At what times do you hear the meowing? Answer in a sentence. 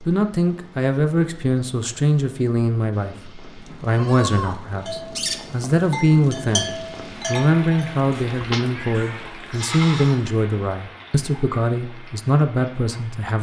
The meowing can be heard from 8.3 to 9.3 s.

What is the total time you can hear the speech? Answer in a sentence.
You can hear the speech for 13 seconds altogether.